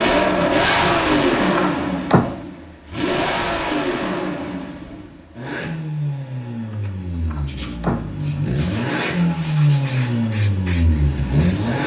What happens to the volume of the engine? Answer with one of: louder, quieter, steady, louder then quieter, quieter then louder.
quieter then louder.